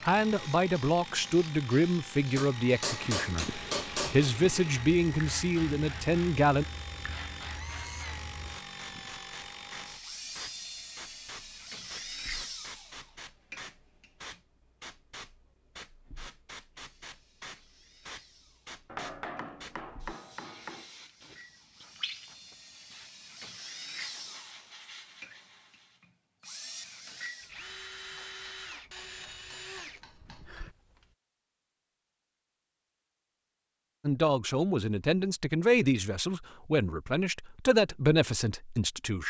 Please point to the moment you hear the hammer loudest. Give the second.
4 s.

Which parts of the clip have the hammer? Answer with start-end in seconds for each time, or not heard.
2.4-4.3, 18.9-20.9, 28.1-30.6.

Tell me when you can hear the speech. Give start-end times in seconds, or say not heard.
0.0-6.7, 34.0-39.2.